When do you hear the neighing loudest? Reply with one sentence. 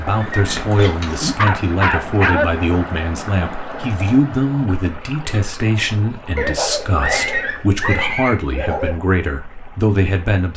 The volume of the neighing peaks at 7 seconds.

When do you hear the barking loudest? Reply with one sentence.
The loudest moment of the barking is at 2 seconds.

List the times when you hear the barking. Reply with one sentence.
You can hear the barking from 1.4 to 2.5 s and from 6.3 to 9.0 s.